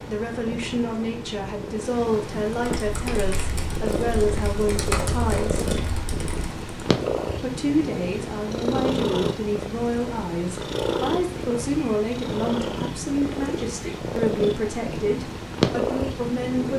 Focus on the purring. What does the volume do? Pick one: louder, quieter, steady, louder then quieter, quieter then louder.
louder.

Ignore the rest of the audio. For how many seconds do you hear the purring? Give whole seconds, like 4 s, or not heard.
17 s.